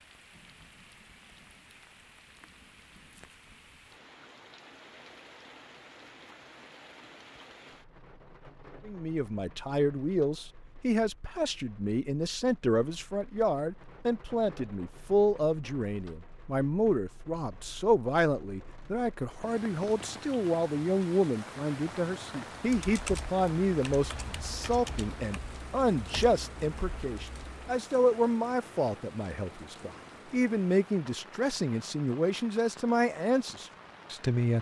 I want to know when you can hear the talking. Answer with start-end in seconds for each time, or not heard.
8.8-34.5.